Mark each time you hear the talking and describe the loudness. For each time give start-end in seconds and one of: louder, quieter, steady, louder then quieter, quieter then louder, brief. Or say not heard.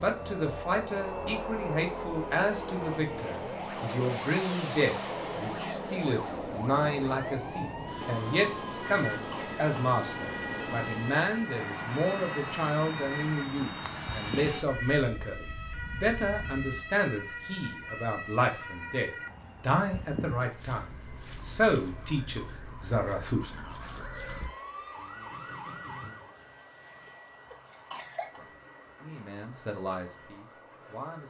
0.0-23.6 steady
28.4-31.2 brief.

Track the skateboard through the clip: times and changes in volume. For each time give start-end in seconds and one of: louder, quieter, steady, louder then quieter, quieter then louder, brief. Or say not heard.
not heard.